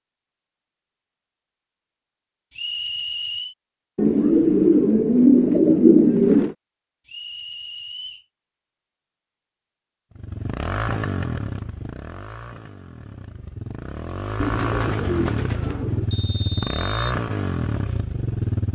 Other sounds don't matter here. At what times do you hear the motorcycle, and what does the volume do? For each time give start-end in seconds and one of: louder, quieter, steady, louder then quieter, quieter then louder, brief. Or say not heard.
10.2-18.7 quieter then louder.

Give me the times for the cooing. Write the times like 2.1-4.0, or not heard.
4.0-6.5, 14.3-16.1.